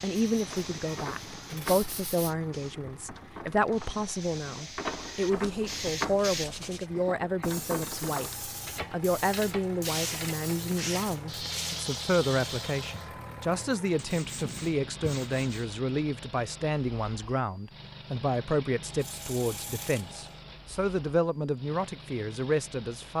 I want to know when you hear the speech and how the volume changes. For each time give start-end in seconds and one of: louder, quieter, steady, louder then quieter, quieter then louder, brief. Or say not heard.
0.0-23.1 steady.